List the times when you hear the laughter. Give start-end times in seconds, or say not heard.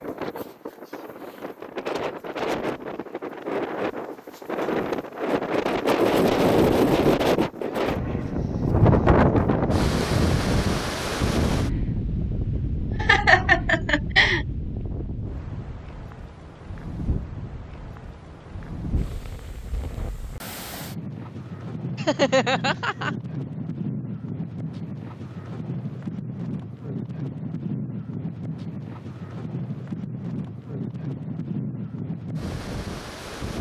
12.6-14.4, 21.9-23.1.